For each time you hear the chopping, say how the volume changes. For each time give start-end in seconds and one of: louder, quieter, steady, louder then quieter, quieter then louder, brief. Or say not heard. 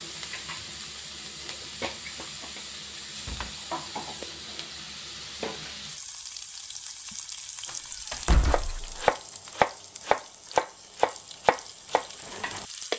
8.4-12.7 quieter.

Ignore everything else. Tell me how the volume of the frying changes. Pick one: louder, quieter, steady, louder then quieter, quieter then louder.
quieter.